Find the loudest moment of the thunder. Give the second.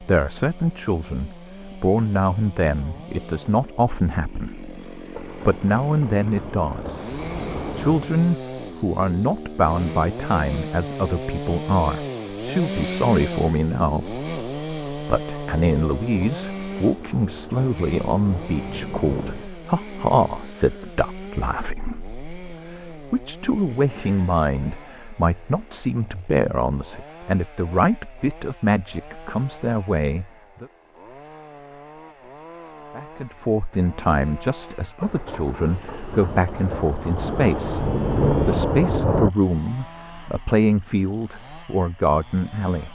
38 s.